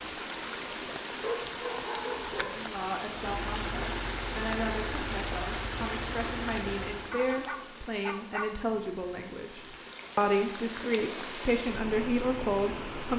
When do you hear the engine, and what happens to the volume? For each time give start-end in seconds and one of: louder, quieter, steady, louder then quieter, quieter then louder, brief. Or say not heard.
3.1-7.2 steady.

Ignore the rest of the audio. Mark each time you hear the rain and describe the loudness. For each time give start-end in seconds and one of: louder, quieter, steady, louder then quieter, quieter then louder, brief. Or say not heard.
0.0-13.1 quieter then louder.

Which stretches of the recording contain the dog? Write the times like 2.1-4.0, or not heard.
1.1-2.6, 7.1-8.8.